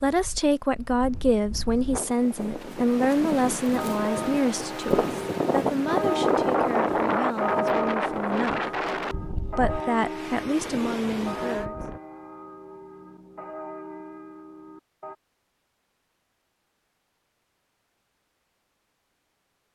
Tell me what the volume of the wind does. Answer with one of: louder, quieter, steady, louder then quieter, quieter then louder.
louder then quieter.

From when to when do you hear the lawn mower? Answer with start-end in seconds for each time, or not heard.
not heard.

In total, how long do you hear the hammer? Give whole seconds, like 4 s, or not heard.
not heard.